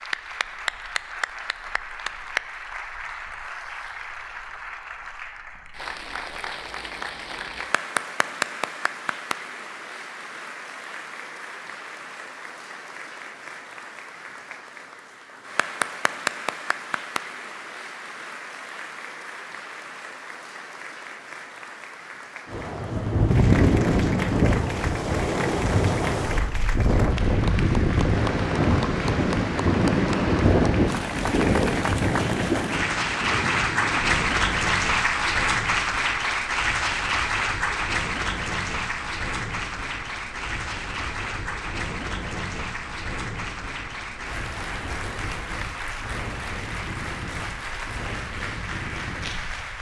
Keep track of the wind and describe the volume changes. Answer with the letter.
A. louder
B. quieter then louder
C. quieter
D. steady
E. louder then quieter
C.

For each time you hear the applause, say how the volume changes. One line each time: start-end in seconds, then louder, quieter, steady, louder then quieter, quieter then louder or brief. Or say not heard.
0.0-49.7 louder then quieter.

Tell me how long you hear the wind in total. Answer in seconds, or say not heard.
27 s.